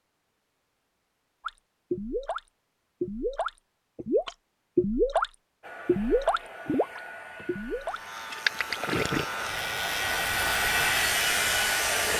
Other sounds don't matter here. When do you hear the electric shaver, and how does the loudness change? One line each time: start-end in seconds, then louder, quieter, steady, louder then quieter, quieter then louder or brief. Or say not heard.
7.8-12.1 louder.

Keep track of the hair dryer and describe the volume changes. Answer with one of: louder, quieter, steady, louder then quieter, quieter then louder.
louder.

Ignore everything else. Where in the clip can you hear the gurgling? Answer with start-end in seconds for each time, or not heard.
1.4-9.2.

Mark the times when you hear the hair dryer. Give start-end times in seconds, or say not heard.
5.6-12.1.